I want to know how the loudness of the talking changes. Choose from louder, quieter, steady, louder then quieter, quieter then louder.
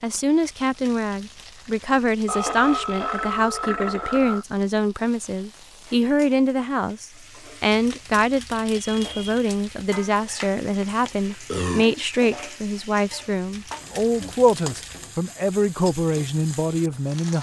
steady.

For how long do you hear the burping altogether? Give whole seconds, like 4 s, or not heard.
4 s.